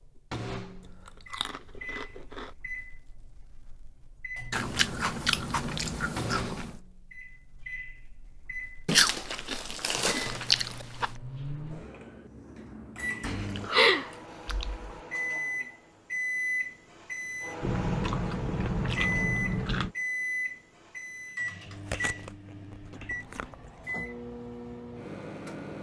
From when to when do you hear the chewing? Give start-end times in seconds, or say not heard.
1.1-2.5, 4.5-6.8, 8.8-11.1, 13.2-15.0, 17.6-19.9, 21.6-23.9.